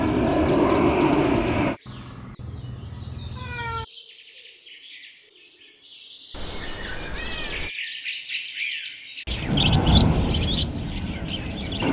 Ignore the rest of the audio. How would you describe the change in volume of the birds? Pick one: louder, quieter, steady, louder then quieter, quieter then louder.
louder.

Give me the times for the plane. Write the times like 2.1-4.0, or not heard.
0.0-1.8, 9.4-11.8.